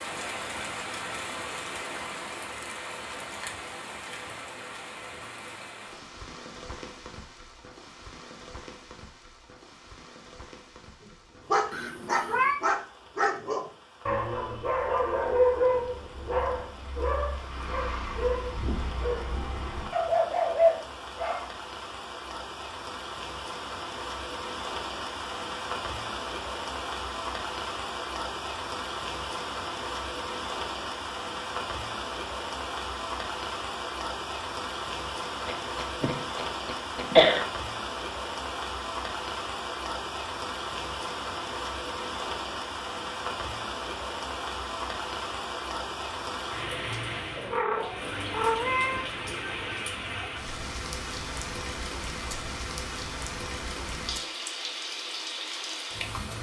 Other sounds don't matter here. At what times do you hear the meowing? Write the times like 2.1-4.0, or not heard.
11.7-12.6, 47.4-49.1.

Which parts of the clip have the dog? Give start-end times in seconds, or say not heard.
11.1-21.4.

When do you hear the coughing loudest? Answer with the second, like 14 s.
37 s.